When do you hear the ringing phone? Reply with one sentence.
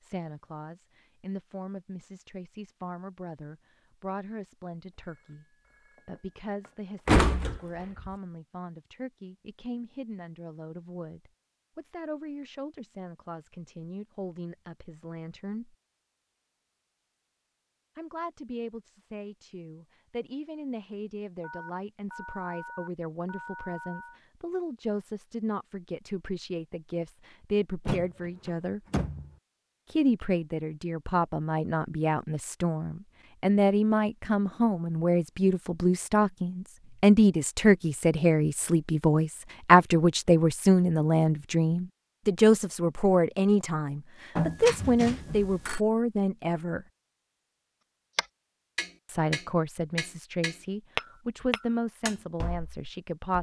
You can hear the ringing phone from 5.0 to 6.8 s, from 21.4 to 24.2 s and from 44.4 to 45.8 s.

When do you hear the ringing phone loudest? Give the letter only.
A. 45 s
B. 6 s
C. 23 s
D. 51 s
A.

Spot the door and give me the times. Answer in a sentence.
The door can be heard from 7.0 to 8.1 s and from 27.9 to 29.3 s.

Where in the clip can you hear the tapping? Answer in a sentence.
The tapping can be heard from 48.1 to 53.3 s.